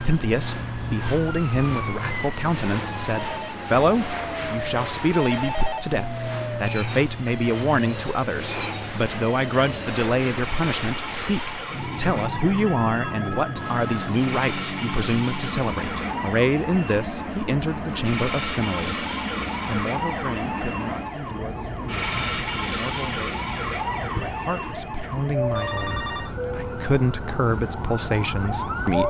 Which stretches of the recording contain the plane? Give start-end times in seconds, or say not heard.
0.0-29.0.